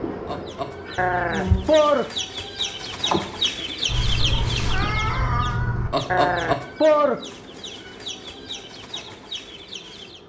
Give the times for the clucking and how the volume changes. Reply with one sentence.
You can hear the clucking from 0.2 to 10.2 s, getting louder then quieter.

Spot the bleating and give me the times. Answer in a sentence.
You can hear the bleating from 0.9 to 2.0 s and from 6.1 to 7.2 s.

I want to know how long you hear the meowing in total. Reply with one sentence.
The meowing can be heard for 2 seconds in total.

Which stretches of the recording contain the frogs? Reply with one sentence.
You can't hear the frogs here.